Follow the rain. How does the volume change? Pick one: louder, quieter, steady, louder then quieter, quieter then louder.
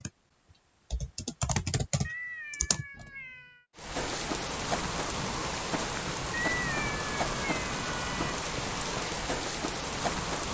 steady.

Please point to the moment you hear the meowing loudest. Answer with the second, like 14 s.
7 s.